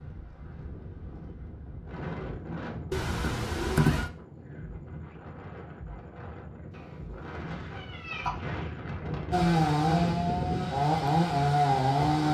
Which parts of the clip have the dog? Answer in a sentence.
You can't hear the dog here.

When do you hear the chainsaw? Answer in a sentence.
The chainsaw can be heard from 9.3 to 12.2 s.